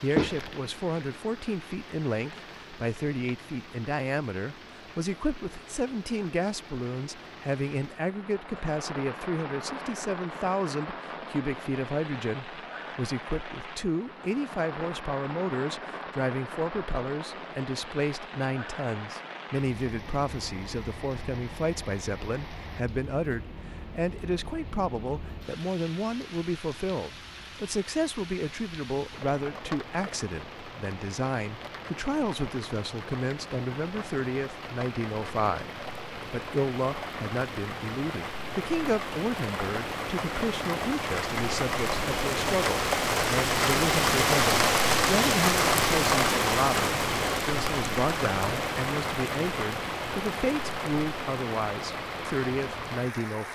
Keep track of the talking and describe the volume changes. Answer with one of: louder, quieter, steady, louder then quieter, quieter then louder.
steady.